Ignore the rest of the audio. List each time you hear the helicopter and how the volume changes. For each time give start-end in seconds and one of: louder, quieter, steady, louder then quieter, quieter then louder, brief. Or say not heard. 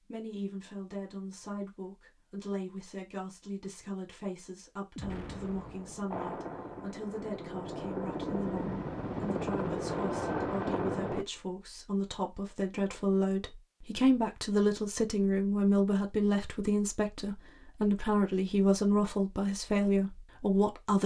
6.1-11.2 louder.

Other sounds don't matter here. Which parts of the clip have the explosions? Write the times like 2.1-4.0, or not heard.
5.0-6.2.